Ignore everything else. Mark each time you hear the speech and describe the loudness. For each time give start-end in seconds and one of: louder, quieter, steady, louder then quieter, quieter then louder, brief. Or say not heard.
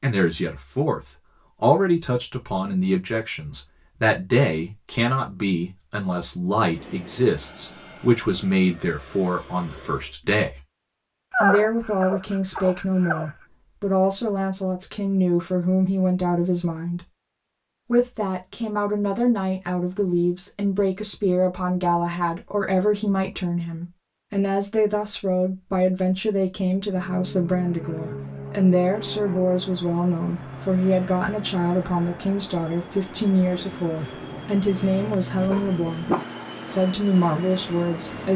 0.0-10.6 steady
11.4-17.0 steady
17.9-38.3 steady.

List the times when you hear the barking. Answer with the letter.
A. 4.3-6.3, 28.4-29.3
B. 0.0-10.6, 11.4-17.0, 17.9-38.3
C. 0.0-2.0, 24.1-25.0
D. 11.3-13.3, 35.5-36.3
D.